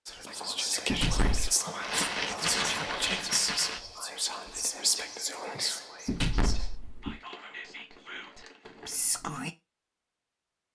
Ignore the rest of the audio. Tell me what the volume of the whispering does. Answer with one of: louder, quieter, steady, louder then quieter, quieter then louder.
quieter.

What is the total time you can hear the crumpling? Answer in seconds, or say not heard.
4 s.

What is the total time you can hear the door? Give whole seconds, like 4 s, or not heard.
2 s.